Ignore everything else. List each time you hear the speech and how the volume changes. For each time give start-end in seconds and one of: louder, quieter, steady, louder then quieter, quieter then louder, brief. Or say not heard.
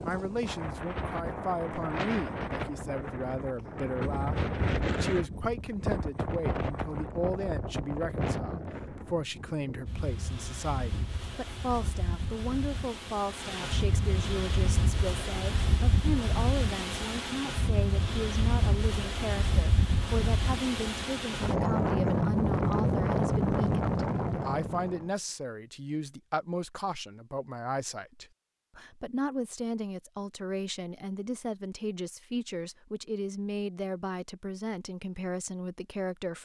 0.0-36.4 steady.